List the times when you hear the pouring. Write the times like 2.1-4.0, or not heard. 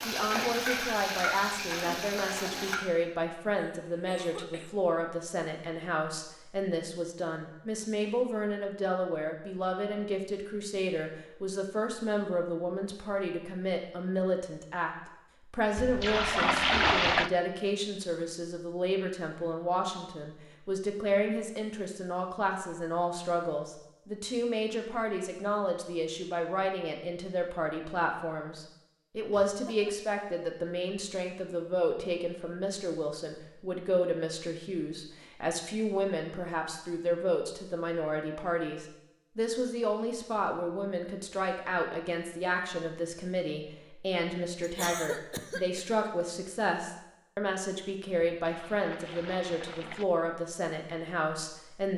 15.8-17.3, 48.4-50.0.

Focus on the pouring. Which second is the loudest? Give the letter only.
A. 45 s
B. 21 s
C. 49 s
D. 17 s
D.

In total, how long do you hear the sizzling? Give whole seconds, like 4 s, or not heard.
3 s.